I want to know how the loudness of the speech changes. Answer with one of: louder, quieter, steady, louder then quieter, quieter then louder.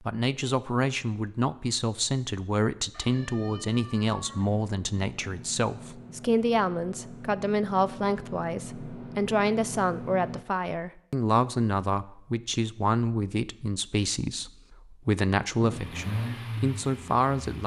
steady.